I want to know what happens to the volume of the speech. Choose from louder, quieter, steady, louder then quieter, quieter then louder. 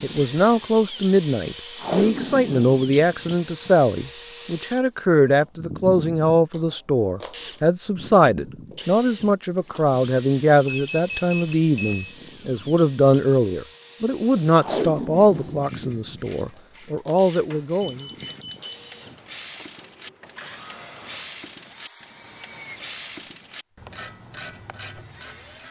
steady.